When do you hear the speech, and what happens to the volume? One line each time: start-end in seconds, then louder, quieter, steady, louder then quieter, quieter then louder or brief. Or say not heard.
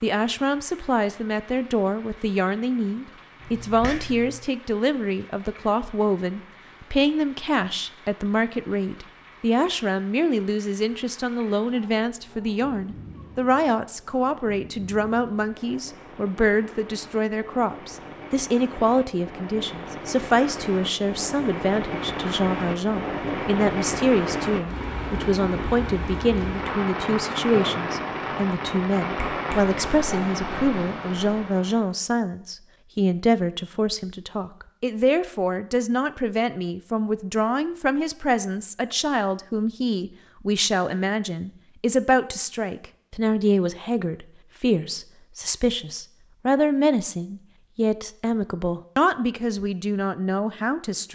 0.0-51.1 steady.